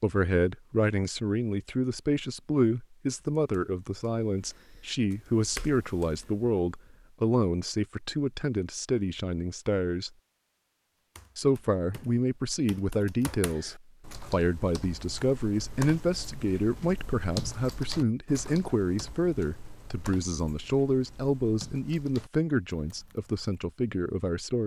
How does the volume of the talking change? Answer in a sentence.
The volume of the talking stays about the same.